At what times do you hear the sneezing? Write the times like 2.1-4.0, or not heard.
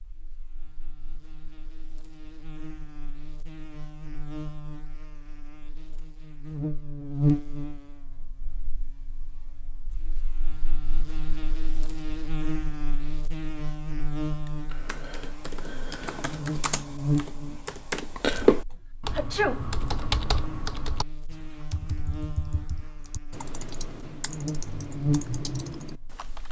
19.1-19.6.